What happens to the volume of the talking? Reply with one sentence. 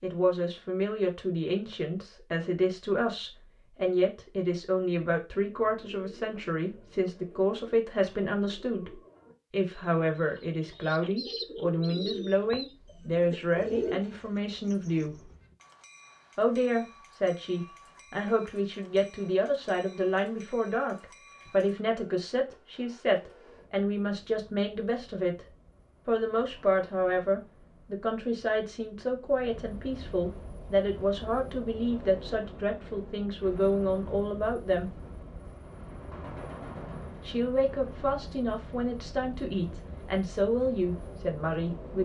The volume of the talking stays about the same.